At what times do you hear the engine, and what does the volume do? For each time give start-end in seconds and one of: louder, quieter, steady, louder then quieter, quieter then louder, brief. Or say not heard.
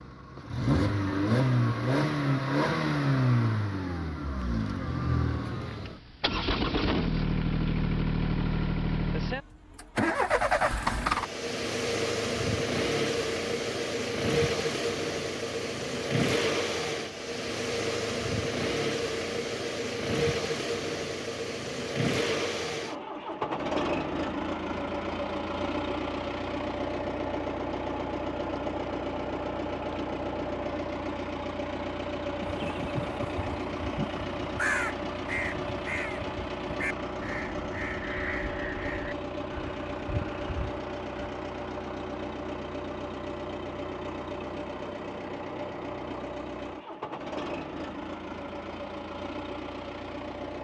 0.0-50.5 quieter.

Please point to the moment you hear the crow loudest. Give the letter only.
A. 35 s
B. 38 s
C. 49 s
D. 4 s
A.